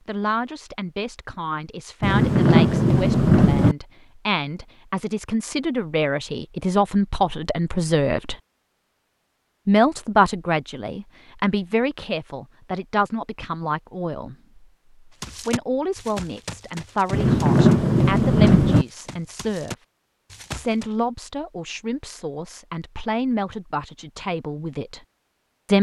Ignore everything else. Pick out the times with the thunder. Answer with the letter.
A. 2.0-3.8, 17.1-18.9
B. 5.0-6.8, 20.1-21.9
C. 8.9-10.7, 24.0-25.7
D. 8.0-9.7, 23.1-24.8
A.